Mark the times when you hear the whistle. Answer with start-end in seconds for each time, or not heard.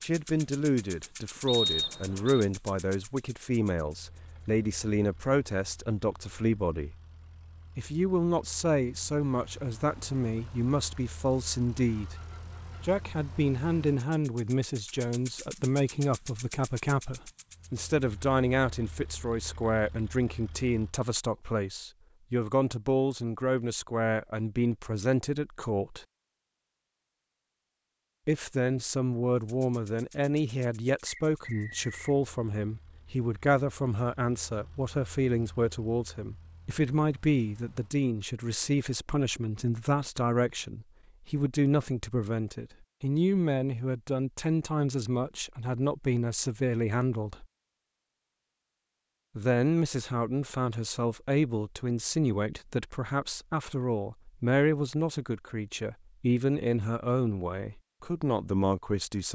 1.4-2.5, 31.1-32.1.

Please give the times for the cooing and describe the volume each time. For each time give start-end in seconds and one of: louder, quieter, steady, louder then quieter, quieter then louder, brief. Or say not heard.
not heard.